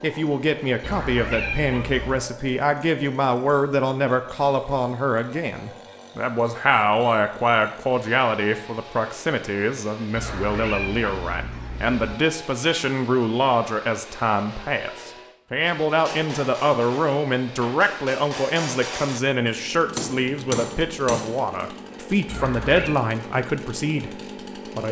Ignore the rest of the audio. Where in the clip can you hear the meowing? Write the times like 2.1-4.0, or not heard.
0.8-2.3, 10.2-12.2, 22.3-23.0.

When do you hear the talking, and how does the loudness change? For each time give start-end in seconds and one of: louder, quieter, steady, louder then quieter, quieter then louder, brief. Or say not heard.
0.0-24.1 steady.